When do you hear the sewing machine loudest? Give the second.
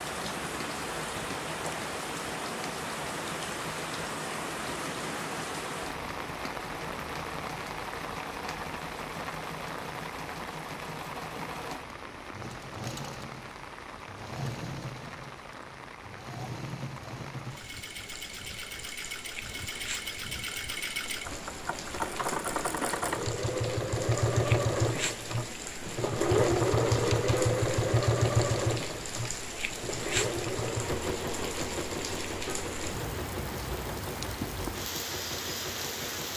27 s.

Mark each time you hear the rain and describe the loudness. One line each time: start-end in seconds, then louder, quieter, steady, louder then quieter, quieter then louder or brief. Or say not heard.
0.0-36.3 quieter then louder.